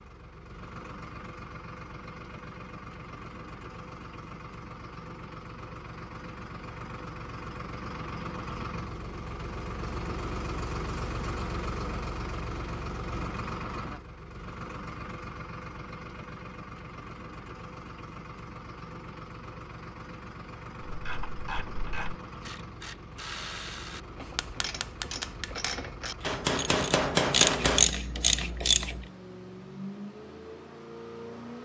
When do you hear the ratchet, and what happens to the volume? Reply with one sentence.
The ratchet can be heard from 20.9 to 29.1 s, getting louder.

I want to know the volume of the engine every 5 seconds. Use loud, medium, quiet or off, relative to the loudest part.
medium, loud, loud, medium, medium, medium, medium.